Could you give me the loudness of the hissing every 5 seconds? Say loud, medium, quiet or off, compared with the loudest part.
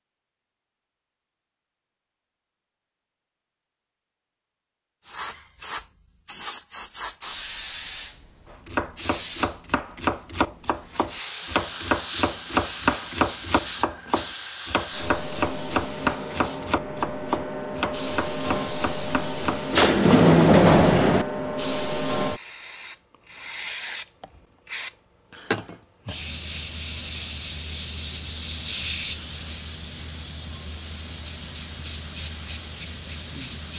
off, loud, medium, loud, loud, loud, loud.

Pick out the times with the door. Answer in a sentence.
You can hear the door from 19.7 to 21.2 s.